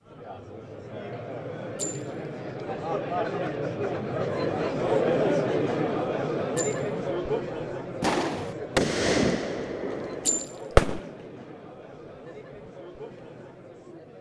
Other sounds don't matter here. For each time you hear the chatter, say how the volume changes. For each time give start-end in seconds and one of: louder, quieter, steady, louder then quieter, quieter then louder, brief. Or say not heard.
0.0-14.1 louder then quieter.